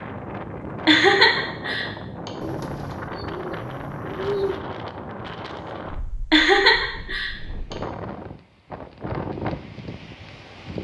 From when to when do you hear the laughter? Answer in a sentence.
You can hear the laughter from 0.8 to 2.3 s and from 6.3 to 7.8 s.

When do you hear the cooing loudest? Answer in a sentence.
The loudest moment of the cooing is at 4 seconds.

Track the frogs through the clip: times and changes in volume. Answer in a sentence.
The frogs can't be heard in this clip.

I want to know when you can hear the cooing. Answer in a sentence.
The cooing can be heard from 2.4 to 4.6 s.